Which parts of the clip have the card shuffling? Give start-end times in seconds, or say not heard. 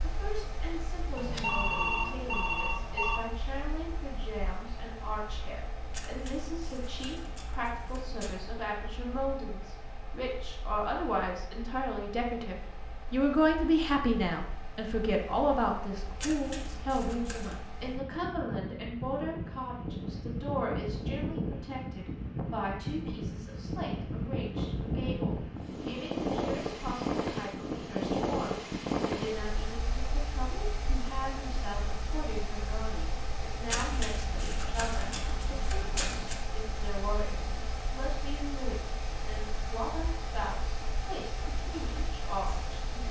5.9-8.3, 16.2-17.6, 33.6-36.4.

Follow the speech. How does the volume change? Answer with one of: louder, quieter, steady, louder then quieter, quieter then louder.
louder then quieter.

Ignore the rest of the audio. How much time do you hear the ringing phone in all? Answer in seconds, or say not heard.
2 s.